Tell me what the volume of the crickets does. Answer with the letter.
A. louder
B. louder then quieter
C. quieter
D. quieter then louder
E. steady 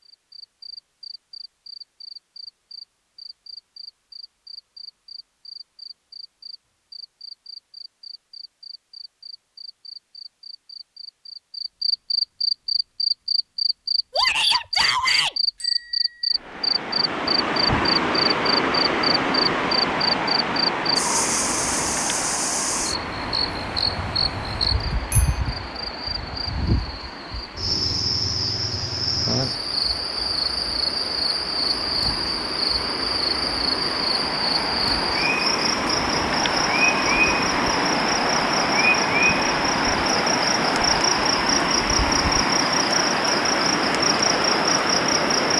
A.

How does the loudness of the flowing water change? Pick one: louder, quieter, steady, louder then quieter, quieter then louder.
quieter then louder.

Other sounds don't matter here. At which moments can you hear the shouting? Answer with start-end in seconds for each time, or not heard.
14.1-15.3.